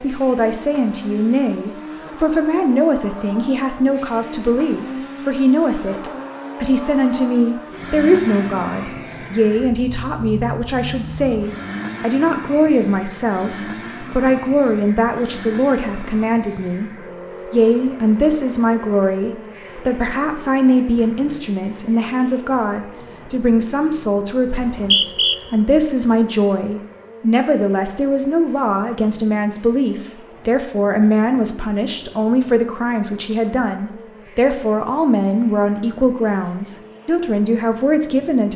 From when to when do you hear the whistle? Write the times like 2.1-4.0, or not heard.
24.5-25.4.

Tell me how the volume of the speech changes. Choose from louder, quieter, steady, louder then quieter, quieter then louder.
steady.